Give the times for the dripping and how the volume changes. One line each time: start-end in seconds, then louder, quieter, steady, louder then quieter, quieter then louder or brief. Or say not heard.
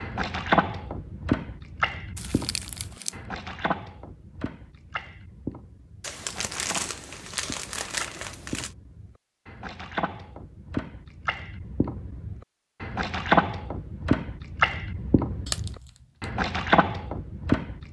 0.0-17.8 quieter then louder.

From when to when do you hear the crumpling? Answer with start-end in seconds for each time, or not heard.
2.1-3.2, 6.0-8.8, 15.4-16.3.